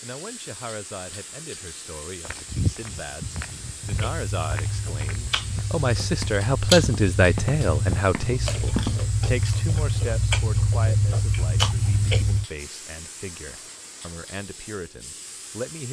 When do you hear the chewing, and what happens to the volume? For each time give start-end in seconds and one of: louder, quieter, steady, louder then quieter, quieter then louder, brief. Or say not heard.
3.8-12.4 louder.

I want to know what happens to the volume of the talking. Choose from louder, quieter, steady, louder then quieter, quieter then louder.
louder then quieter.